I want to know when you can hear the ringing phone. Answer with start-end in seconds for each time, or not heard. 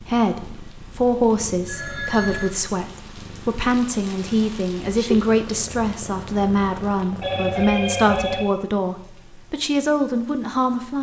1.6-2.5, 7.2-8.5.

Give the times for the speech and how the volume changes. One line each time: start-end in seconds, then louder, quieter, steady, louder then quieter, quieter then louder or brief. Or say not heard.
0.0-10.9 steady.